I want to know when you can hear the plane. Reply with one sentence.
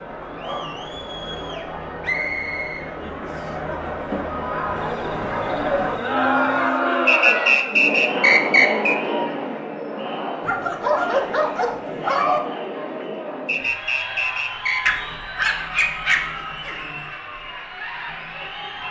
You can't hear the plane here.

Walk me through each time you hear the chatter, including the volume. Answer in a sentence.
You can hear the chatter from 0.0 to 18.8 s, getting louder then quieter.